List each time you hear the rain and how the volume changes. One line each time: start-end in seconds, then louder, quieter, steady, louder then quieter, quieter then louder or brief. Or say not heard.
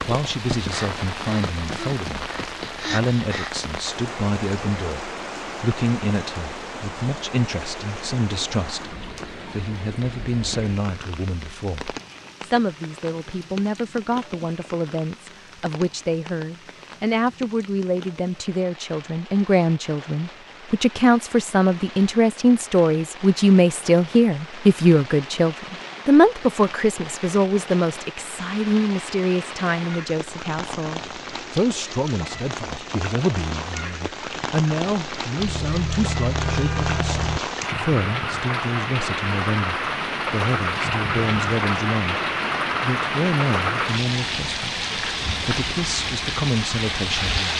0.0-47.5 quieter then louder.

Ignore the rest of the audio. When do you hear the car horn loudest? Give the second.
37 s.